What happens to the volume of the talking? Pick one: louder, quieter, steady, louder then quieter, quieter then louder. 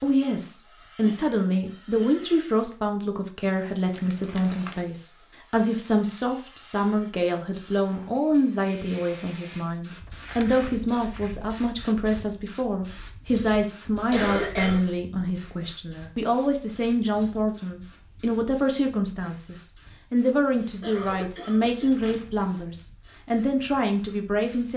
steady.